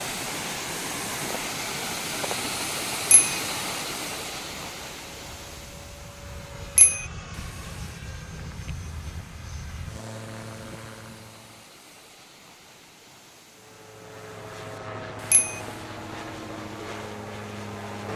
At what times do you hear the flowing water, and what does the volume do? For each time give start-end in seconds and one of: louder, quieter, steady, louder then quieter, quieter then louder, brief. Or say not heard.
0.0-17.9 quieter.